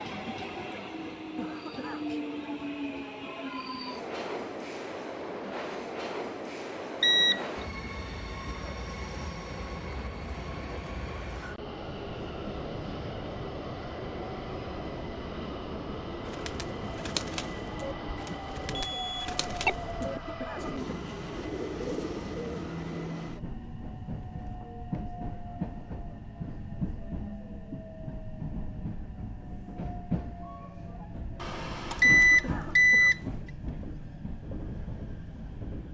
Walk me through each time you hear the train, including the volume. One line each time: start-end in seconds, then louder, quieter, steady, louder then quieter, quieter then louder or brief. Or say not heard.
0.0-35.8 steady.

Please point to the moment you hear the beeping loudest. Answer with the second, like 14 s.
32 s.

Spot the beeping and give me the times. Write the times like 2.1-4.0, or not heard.
7.0-7.5, 18.8-19.8, 31.4-33.2.